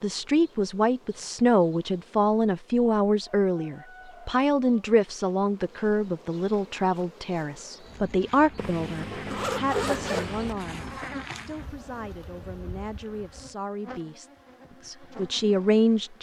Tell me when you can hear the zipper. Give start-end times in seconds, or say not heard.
8.6-10.6.